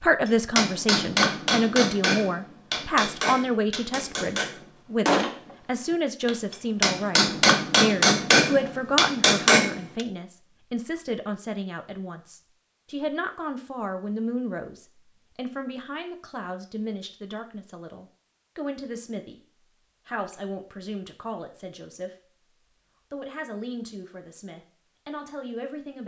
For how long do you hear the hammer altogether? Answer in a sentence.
The hammer can be heard for 10 seconds in total.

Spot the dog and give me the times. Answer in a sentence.
You can't hear the dog here.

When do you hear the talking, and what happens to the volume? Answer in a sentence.
You can hear the talking from 0.0 to 19.4 s, getting quieter; briefly from 20.1 to 22.1 s; and briefly from 23.1 to 26.0 s.